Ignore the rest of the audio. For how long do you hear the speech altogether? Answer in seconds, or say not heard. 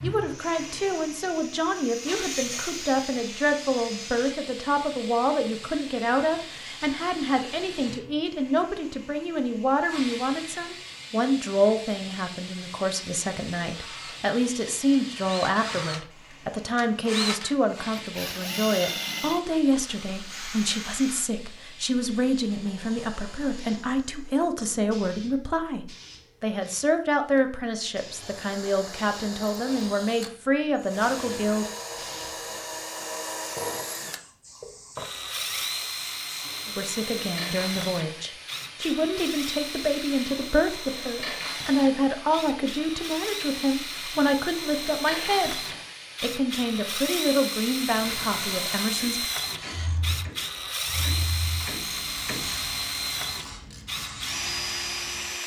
44 s.